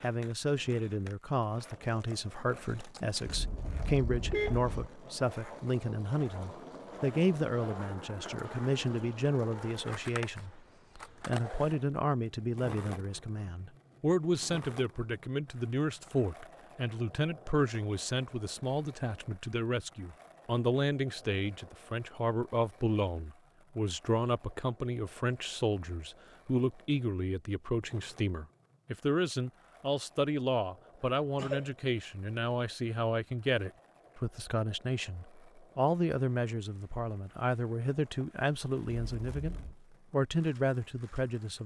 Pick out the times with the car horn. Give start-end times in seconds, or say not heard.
3.2-4.9, 38.9-39.8.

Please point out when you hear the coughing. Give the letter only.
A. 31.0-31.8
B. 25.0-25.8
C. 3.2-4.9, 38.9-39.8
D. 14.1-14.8
A.